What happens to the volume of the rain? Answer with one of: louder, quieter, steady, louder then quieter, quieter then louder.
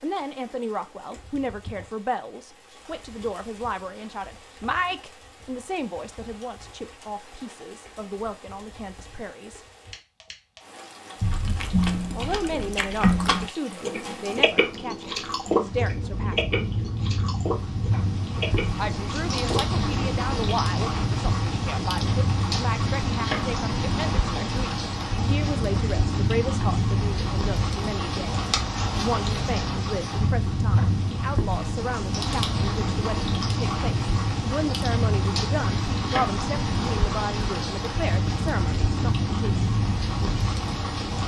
louder.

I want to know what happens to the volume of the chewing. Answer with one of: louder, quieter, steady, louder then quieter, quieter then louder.
quieter.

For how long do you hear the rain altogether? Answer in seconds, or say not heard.
41 s.